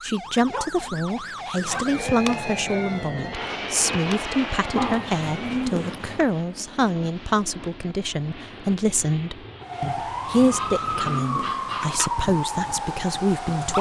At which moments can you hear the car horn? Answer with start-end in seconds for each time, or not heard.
not heard.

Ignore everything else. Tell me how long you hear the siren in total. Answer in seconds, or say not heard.
10 s.